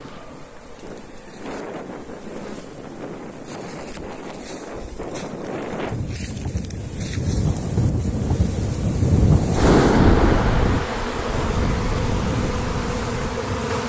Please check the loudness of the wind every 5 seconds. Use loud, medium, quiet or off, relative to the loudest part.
quiet, loud, loud.